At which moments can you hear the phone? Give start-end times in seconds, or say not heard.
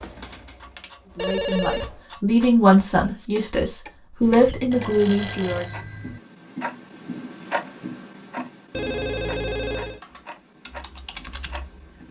1.1-1.9, 4.2-6.2, 8.7-10.0.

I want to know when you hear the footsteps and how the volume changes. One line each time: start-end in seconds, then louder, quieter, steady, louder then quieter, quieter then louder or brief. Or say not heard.
not heard.